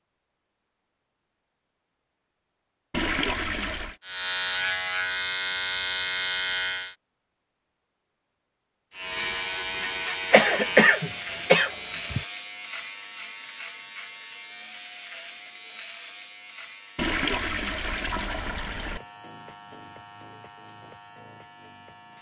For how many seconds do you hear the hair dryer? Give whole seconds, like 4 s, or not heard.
not heard.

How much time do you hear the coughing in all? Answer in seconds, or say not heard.
2 s.